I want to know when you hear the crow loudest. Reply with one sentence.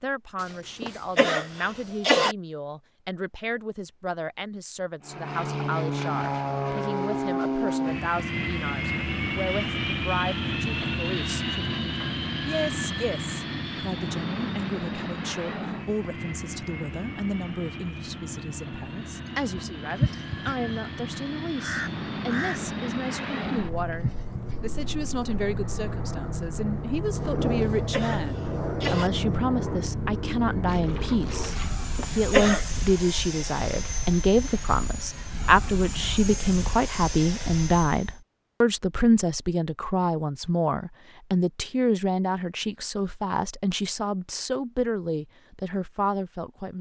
The loudest moment of the crow is at 20 seconds.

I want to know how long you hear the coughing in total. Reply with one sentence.
You can hear the coughing for 5 seconds altogether.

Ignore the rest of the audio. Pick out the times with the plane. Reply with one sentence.
You can hear the plane from 5.0 to 38.2 s.